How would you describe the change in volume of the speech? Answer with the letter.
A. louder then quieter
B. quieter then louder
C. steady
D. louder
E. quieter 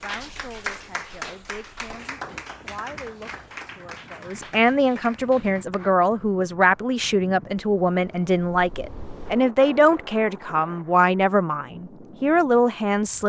D.